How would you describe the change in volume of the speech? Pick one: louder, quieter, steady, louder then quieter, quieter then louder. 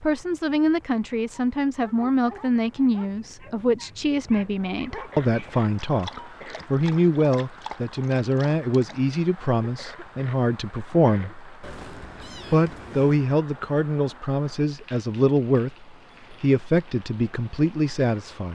steady.